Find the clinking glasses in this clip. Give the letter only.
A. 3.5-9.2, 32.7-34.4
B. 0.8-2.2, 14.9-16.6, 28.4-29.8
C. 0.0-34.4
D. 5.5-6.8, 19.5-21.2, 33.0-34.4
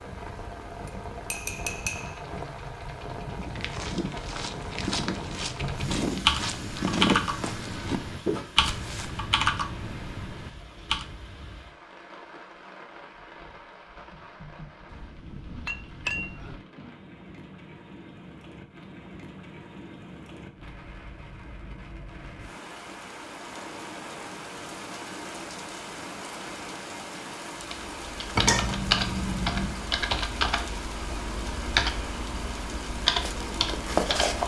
B.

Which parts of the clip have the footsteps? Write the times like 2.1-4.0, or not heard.
3.5-9.2, 32.7-34.4.